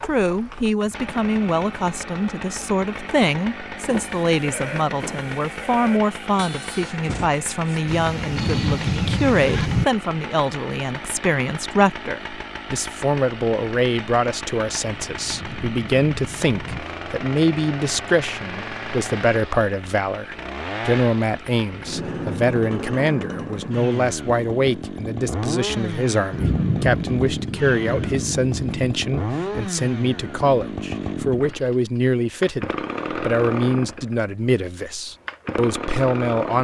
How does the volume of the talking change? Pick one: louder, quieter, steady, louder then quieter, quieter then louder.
steady.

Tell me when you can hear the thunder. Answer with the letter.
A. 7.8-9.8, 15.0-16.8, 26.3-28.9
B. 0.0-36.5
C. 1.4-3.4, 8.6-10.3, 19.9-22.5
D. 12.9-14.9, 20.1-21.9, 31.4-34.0
A.